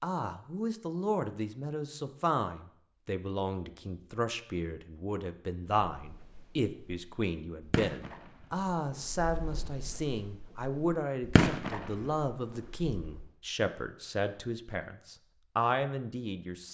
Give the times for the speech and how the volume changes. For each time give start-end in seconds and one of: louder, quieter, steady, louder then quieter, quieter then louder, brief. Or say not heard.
0.0-16.6 steady.